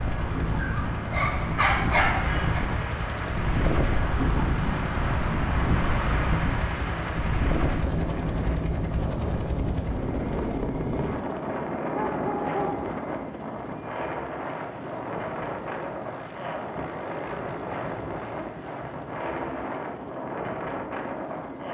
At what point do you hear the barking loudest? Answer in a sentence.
The volume of the barking peaks at 2 seconds.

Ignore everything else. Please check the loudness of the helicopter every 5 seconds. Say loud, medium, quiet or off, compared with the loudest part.
loud, loud, loud, medium, medium.